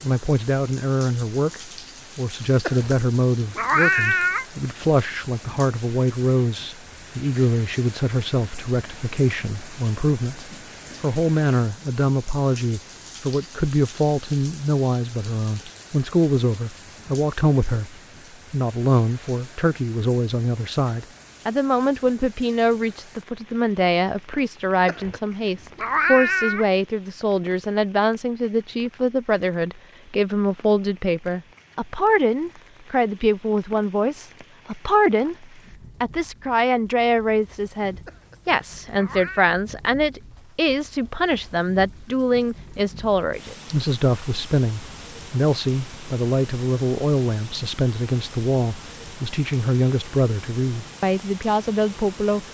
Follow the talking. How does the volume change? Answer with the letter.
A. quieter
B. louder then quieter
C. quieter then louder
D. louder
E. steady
E.